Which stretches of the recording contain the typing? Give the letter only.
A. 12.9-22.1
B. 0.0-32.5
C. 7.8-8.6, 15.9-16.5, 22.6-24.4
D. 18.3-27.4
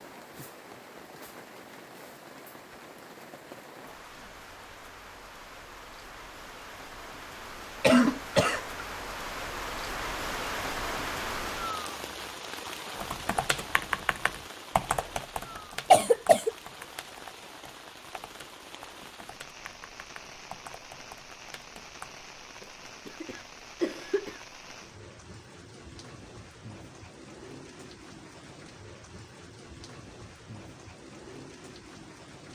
A.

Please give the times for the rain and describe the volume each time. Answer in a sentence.
You can hear the rain from 0.0 to 32.5 s, getting louder then quieter.